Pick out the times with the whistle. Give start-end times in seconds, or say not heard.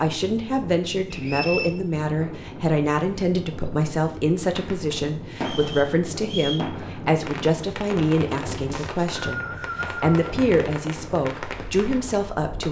1.1-1.7, 5.3-6.7, 8.7-10.3.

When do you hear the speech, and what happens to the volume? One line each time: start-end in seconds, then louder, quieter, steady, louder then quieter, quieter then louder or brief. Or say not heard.
0.0-12.6 steady.